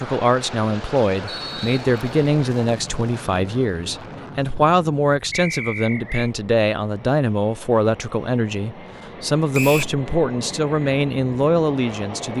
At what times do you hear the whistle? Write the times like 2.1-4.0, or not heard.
1.2-2.3, 5.3-6.3, 9.5-9.9.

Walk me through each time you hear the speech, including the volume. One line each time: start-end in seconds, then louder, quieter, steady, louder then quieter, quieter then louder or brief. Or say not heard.
0.0-12.3 steady.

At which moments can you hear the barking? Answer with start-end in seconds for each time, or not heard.
not heard.